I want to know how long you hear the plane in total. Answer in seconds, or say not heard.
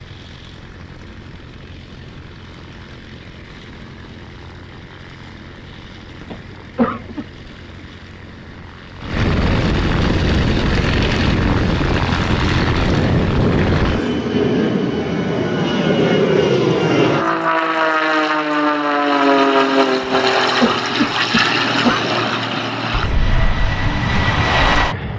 25 s.